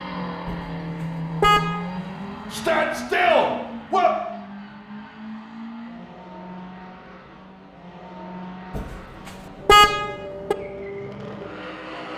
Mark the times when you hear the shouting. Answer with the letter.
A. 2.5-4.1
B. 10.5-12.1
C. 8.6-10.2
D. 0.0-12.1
A.